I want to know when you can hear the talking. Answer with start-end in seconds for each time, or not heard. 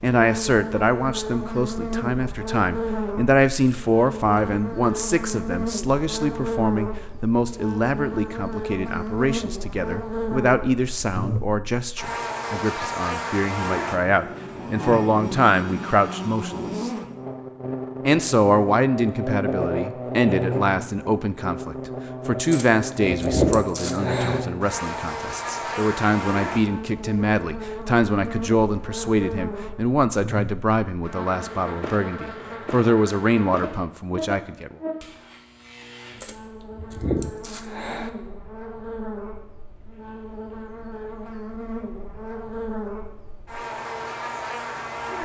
0.0-16.9, 18.1-34.8.